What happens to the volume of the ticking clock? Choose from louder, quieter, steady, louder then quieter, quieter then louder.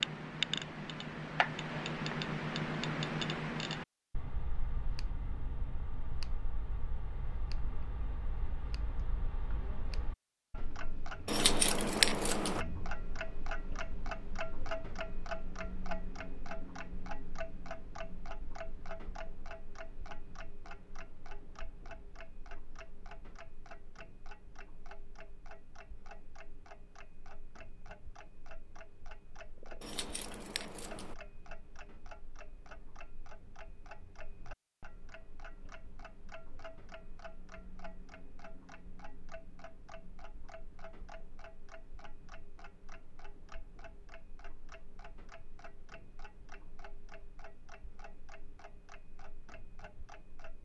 quieter.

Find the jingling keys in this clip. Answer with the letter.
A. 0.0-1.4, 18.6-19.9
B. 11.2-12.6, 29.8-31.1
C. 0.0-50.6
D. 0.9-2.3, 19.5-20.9
B.